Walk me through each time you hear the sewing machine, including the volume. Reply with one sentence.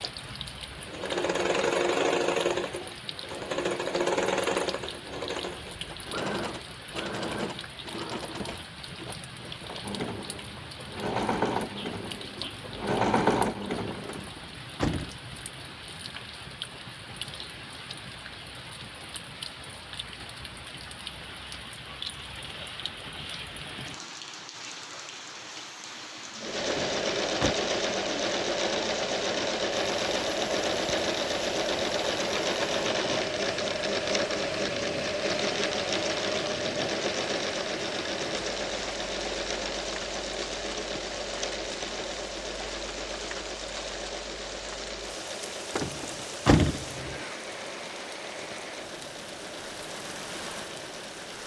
You can hear the sewing machine from 0.0 to 14.3 s, getting quieter then louder; and from 26.4 to 51.4 s, getting quieter.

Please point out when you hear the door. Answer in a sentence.
You can hear the door from 14.1 to 15.2 s, from 26.7 to 27.6 s and from 45.8 to 47.2 s.